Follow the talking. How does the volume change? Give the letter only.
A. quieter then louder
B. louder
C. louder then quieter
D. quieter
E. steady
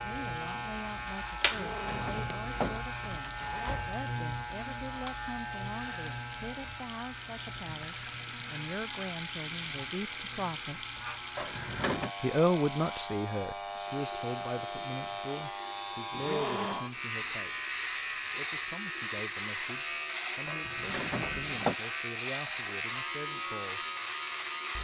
C.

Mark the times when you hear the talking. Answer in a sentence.
You can hear the talking from 0.0 to 10.8 s and from 12.2 to 23.9 s.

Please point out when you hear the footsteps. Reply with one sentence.
You can't hear the footsteps here.